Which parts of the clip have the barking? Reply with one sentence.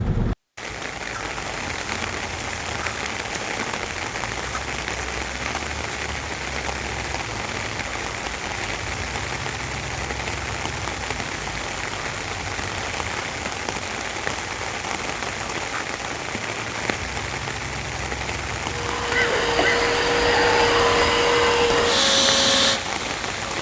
You can't hear the barking here.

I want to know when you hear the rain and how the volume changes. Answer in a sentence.
You can hear the rain from 0.0 to 23.5 s, at a steady volume.